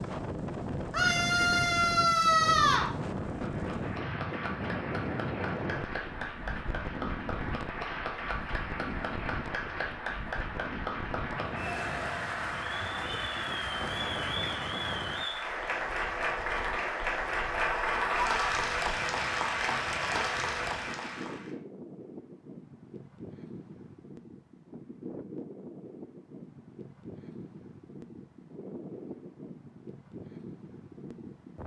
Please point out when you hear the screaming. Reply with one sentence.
The screaming can be heard from 0.9 to 2.9 s and from 17.6 to 18.6 s.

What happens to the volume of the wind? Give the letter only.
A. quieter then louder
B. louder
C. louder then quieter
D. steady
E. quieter
E.